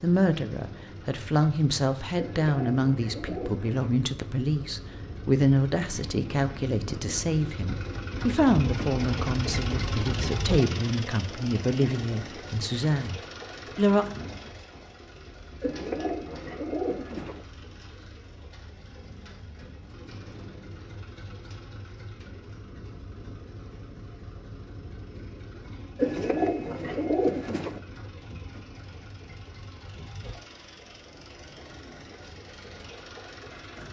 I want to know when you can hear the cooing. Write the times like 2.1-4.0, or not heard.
2.1-4.0, 15.6-17.4, 25.9-27.8.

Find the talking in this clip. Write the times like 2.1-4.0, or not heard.
0.0-14.1.